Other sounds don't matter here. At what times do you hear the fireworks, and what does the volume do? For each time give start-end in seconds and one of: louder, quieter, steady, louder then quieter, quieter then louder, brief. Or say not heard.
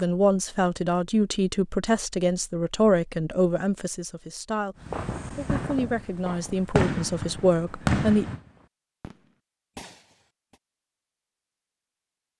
4.8-10.6 louder then quieter.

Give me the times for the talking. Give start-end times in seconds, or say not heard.
0.0-8.2.